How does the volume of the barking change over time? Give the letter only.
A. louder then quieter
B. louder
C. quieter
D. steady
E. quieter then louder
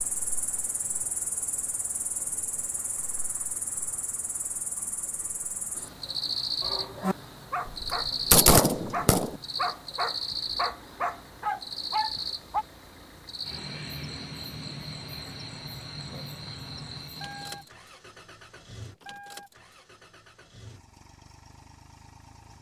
D.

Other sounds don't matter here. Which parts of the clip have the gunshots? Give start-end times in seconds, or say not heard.
7.7-9.4.